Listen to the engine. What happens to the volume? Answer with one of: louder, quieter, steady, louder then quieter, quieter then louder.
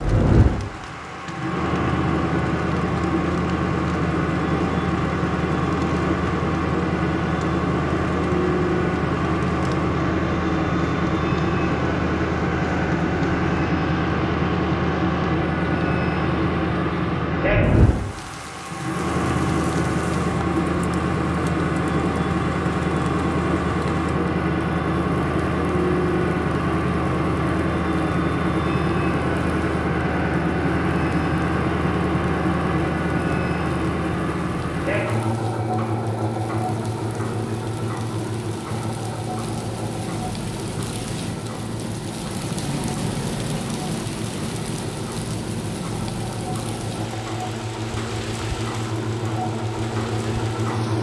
quieter.